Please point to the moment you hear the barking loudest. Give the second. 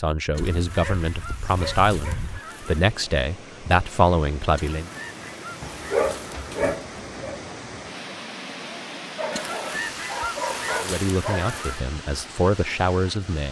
6 s.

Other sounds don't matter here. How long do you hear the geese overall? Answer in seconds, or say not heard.
7 s.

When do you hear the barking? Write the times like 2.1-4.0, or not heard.
0.7-2.4, 5.6-7.3, 9.2-11.6.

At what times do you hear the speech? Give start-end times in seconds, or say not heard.
0.0-4.9, 10.8-13.4.